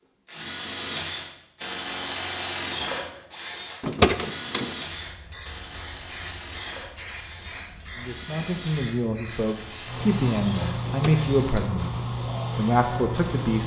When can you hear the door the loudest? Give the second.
4 s.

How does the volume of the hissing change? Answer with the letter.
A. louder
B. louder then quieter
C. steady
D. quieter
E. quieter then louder
A.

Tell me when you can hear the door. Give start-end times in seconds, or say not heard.
3.8-4.8, 10.8-11.8.